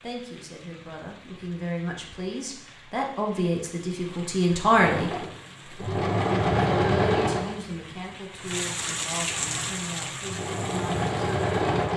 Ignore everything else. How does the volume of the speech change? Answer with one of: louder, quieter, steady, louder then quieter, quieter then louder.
louder then quieter.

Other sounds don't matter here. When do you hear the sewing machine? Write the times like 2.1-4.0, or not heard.
4.8-7.6, 9.2-11.9.